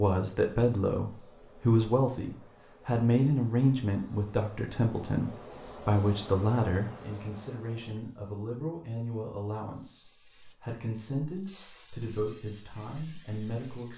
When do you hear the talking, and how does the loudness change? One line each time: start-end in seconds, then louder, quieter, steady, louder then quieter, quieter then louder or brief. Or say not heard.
0.0-13.9 quieter.